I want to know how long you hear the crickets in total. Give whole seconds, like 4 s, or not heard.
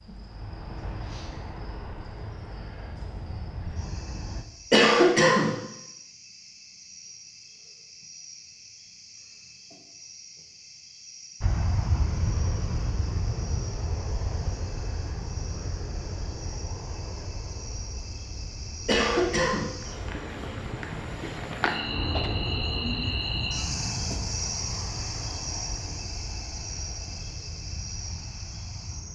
29 s.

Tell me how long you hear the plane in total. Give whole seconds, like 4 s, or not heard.
22 s.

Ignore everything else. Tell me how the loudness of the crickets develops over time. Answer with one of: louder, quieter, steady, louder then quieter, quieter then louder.
louder.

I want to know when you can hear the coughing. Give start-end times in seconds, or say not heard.
4.7-5.5, 18.9-19.8.